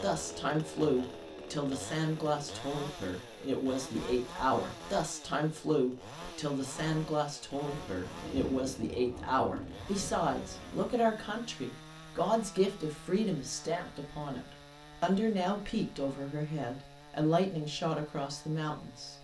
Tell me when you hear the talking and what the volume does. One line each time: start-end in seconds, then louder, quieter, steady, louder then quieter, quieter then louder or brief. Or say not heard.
0.0-19.2 steady.